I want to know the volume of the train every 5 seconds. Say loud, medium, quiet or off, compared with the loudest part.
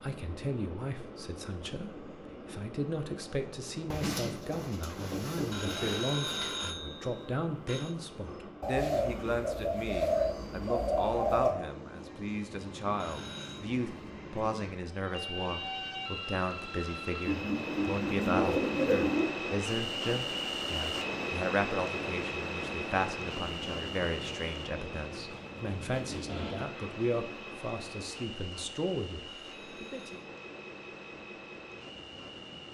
medium, medium, medium, loud, loud, medium, medium.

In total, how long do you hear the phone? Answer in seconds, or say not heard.
4 s.